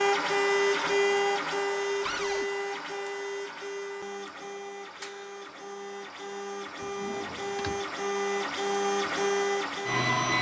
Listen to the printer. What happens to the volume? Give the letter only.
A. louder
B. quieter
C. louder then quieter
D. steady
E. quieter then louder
E.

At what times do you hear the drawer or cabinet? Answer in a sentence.
You can hear the drawer or cabinet from 2.0 to 2.5 s and from 6.8 to 7.8 s.